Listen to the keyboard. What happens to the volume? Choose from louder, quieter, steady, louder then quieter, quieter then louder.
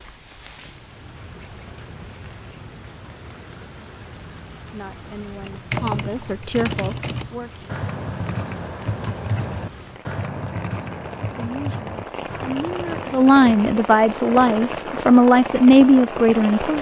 quieter.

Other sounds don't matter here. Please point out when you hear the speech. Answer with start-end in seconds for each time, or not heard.
4.7-7.7, 11.3-16.7.